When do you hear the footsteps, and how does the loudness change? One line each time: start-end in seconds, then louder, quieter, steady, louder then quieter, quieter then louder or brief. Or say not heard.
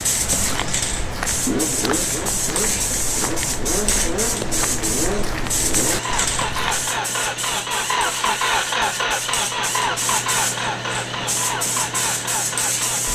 0.1-6.8 steady.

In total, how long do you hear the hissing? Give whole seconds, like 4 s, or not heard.
13 s.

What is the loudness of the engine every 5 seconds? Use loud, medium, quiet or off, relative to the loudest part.
medium, loud, loud.